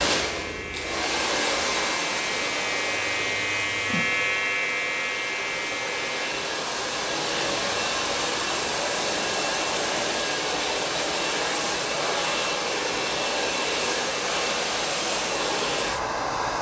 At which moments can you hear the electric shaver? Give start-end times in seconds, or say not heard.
0.2-6.3.